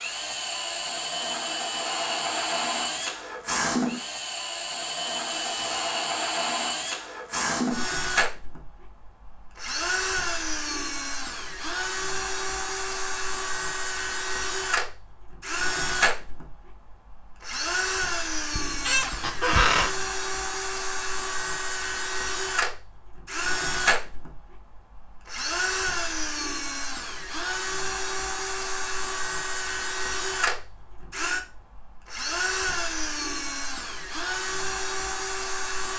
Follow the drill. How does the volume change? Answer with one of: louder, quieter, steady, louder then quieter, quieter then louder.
steady.